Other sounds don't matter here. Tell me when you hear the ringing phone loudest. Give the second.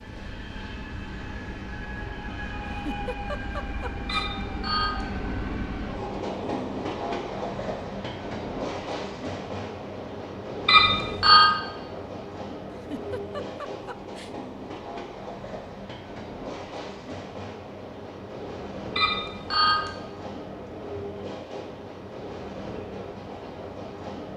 11 s.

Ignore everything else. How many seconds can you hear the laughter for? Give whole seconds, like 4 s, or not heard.
3 s.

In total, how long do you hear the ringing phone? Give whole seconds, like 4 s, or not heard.
3 s.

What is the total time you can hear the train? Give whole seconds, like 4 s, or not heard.
24 s.